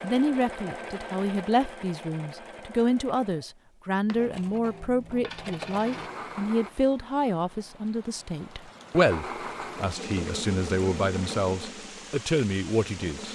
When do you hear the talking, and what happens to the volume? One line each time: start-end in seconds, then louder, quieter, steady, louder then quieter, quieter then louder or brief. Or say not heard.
0.0-13.3 steady.